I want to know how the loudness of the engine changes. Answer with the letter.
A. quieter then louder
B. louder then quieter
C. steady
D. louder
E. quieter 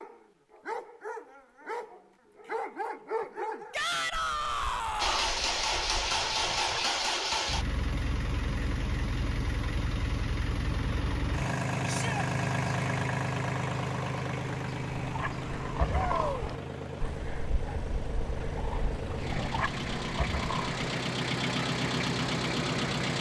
A.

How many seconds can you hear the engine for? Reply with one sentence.
You can hear the engine for 18 seconds altogether.